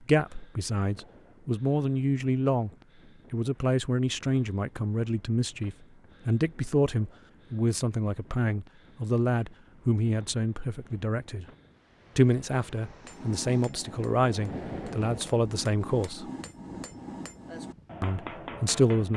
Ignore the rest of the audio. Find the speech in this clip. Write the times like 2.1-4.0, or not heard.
0.0-2.7, 3.3-11.4, 12.2-16.2, 18.0-19.1.